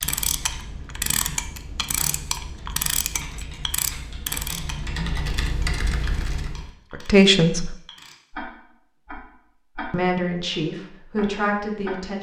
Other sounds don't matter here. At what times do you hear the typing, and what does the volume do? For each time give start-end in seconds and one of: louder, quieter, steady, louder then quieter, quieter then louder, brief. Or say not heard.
0.0-6.7 louder.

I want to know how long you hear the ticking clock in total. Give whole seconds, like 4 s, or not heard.
12 s.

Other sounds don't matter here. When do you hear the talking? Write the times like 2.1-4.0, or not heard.
7.0-7.8, 9.9-12.1.